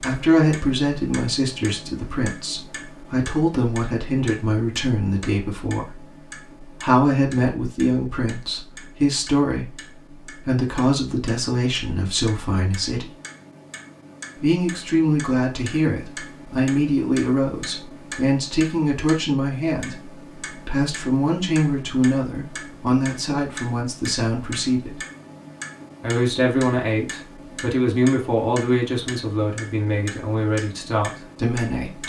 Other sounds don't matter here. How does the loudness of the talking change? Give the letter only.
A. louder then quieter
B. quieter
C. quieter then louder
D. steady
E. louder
D.